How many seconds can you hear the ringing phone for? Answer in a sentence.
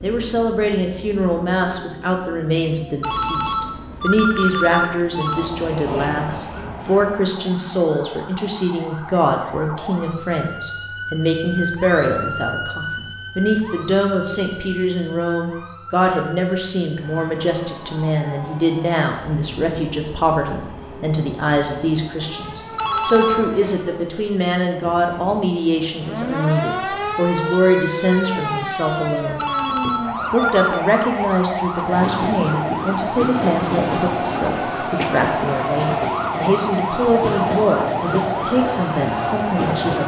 The ringing phone can be heard for 5 seconds in total.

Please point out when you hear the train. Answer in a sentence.
The train can be heard from 5.3 to 7.2 s and from 16.9 to 40.0 s.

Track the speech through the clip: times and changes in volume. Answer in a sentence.
The speech can be heard from 0.0 to 40.0 s, at a steady volume.